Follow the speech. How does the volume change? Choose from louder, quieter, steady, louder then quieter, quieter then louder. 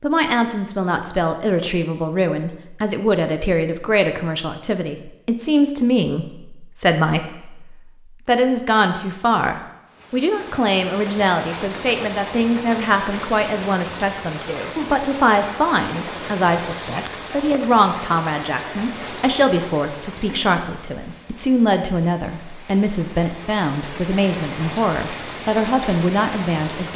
steady.